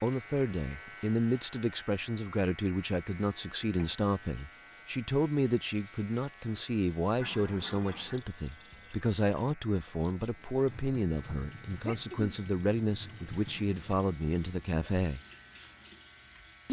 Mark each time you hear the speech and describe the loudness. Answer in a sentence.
You can hear the speech from 0.0 to 15.2 s, at a steady volume.